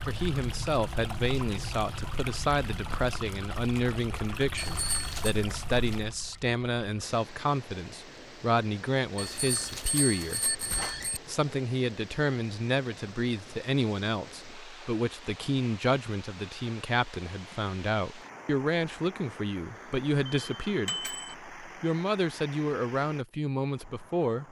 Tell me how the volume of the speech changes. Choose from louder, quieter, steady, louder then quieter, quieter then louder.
steady.